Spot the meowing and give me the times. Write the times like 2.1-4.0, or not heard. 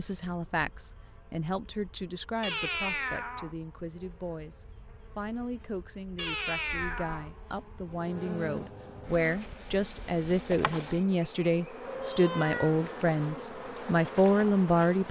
2.4-3.5, 6.2-7.3, 11.8-12.8.